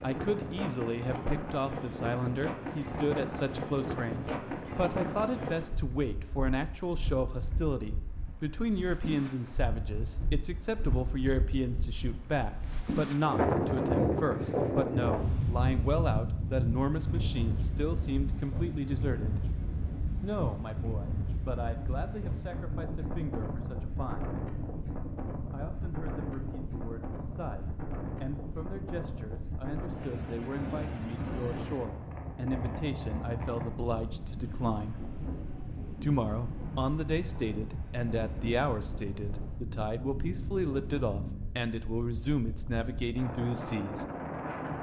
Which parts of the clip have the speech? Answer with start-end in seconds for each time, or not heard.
0.0-19.4, 20.2-24.4, 25.5-35.0, 36.0-44.0.